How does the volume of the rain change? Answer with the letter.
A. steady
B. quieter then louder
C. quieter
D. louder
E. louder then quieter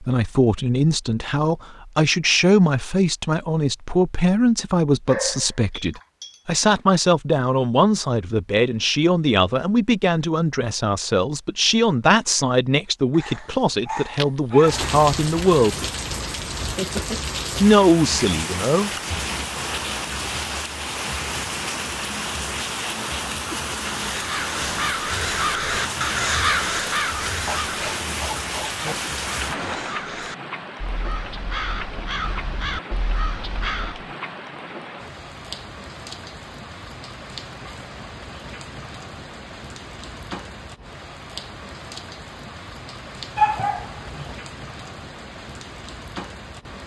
C.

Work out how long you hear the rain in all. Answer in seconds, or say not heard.
32 s.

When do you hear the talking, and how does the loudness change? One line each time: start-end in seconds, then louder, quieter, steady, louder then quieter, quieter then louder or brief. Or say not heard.
0.0-15.8 steady
17.6-19.4 brief.